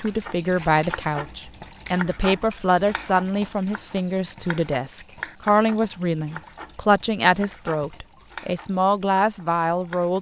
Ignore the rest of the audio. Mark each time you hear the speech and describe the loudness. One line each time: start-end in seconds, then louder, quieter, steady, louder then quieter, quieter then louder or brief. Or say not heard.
0.0-10.1 steady.